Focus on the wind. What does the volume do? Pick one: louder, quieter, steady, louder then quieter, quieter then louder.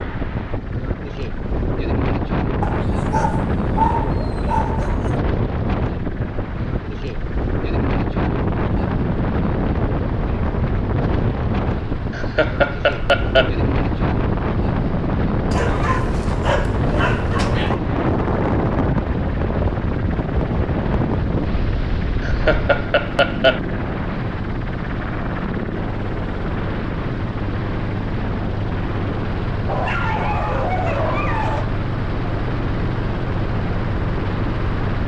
steady.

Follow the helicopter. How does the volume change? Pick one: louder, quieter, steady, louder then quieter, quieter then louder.
louder.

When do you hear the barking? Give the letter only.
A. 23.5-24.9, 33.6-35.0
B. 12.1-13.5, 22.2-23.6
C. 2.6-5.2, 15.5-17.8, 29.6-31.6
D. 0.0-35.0
C.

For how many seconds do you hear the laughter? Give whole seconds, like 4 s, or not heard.
3 s.